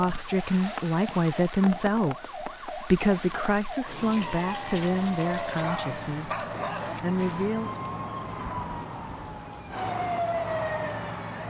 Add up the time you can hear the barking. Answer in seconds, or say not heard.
3 s.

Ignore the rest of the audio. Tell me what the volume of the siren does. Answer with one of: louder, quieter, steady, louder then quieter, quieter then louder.
louder.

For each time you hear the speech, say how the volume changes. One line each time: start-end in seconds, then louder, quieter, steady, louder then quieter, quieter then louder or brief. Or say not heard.
0.0-7.8 quieter.